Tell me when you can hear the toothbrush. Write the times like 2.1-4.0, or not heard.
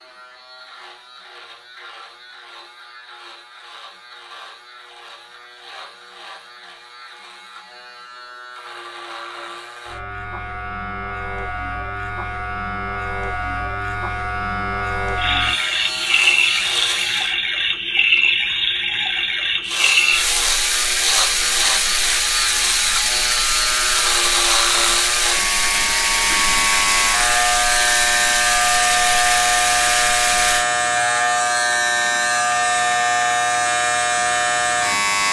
not heard.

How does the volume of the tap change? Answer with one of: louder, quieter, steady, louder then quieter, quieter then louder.
steady.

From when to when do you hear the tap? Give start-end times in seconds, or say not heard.
15.2-30.6.